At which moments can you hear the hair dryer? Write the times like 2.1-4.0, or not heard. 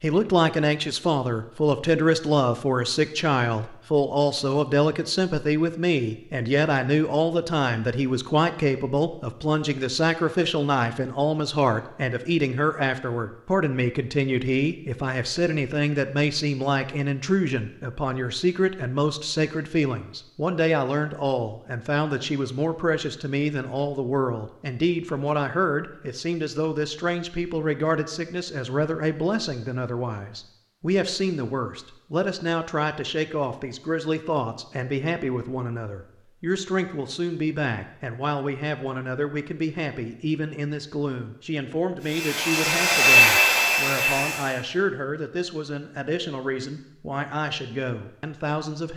42.0-44.6.